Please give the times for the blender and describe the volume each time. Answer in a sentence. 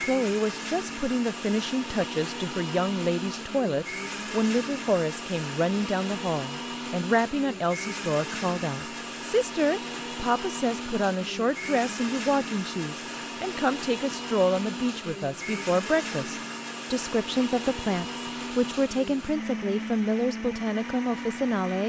You can hear the blender from 0.0 to 21.8 s, at a steady volume.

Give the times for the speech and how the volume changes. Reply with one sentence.
You can hear the speech from 0.0 to 21.8 s, at a steady volume.